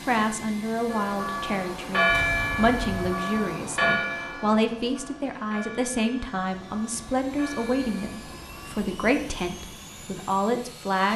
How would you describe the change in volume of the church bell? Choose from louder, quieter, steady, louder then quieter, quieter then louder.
quieter.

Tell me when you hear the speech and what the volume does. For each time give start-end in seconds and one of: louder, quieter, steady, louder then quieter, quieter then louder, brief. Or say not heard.
0.1-11.1 steady.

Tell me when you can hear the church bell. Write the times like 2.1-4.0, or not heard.
0.8-8.8.